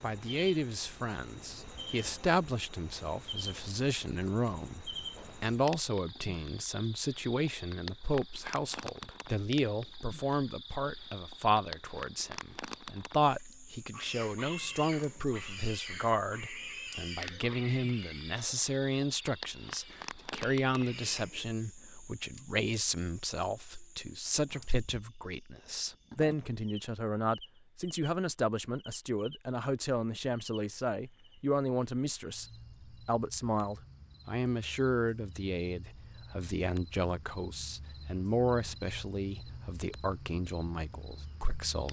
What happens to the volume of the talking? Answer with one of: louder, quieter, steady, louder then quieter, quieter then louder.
steady.